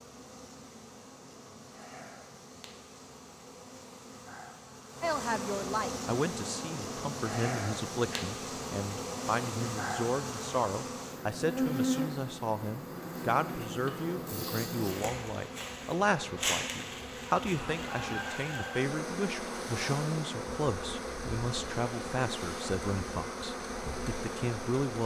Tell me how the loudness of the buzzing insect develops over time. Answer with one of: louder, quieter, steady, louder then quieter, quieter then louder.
louder.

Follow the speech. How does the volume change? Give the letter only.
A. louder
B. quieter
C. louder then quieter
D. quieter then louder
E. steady
E.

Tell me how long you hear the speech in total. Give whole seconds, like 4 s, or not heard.
20 s.